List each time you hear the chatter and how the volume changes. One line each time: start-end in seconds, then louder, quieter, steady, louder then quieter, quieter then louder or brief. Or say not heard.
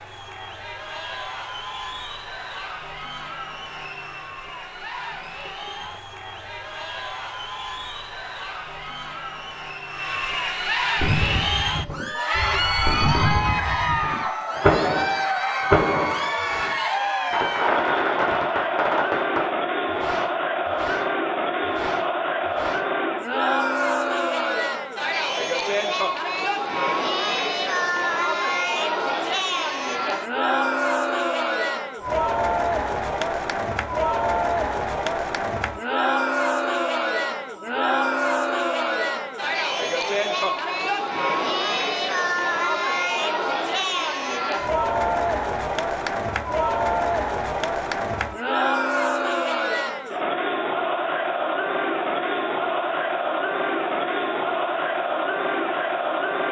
0.0-56.4 louder.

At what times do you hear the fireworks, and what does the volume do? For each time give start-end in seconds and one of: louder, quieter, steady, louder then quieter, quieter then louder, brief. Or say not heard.
10.9-22.9 louder then quieter.